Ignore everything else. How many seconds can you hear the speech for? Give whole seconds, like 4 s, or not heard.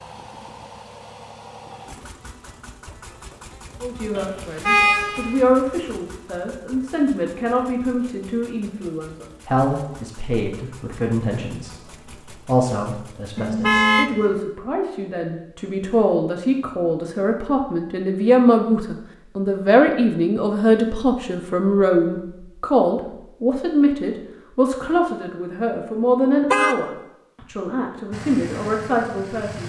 26 s.